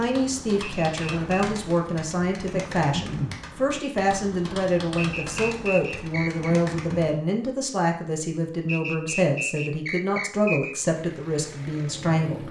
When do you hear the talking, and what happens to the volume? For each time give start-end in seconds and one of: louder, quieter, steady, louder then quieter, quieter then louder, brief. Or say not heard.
0.0-12.4 steady.